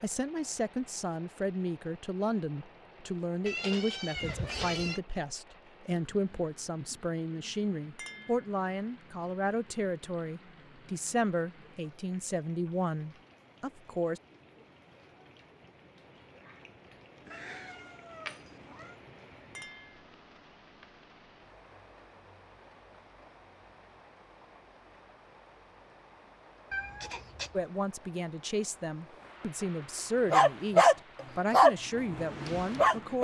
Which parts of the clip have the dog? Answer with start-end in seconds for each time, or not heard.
30.3-33.1.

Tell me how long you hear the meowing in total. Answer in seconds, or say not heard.
4 s.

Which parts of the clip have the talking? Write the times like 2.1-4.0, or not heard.
0.0-14.2, 27.5-33.1.